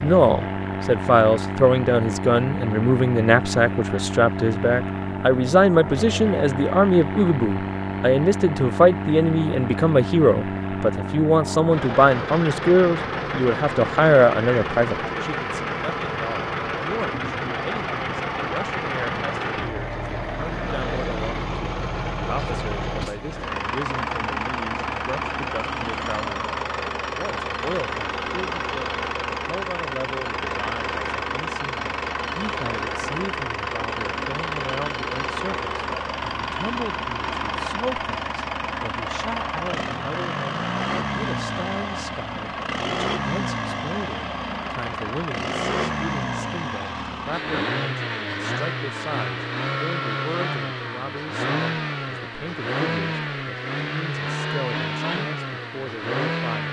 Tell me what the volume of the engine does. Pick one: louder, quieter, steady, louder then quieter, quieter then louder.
steady.